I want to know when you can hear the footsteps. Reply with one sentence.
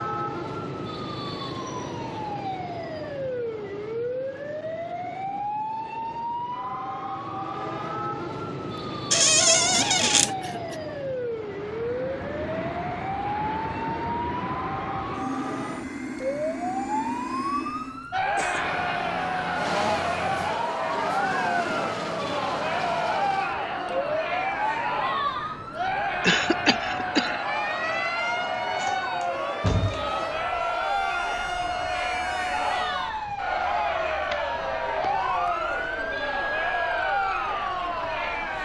You can't hear the footsteps here.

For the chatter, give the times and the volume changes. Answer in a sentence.
You can hear the chatter from 18.1 to 38.6 s, at a steady volume.